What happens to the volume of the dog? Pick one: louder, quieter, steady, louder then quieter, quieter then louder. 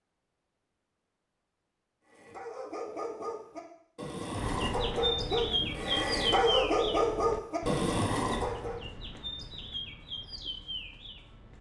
louder.